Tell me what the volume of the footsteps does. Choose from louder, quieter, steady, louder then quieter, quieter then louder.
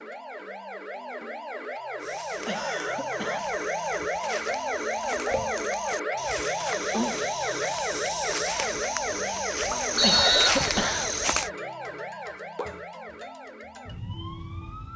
louder.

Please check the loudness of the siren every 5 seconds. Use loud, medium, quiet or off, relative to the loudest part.
loud, loud, medium.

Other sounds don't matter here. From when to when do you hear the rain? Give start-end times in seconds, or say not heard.
not heard.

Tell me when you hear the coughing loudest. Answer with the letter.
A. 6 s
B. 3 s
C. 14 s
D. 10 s
D.